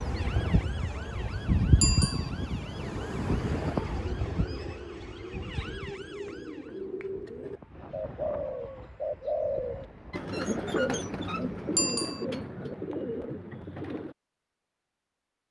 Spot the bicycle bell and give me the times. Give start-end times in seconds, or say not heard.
1.8-2.3, 11.8-12.2.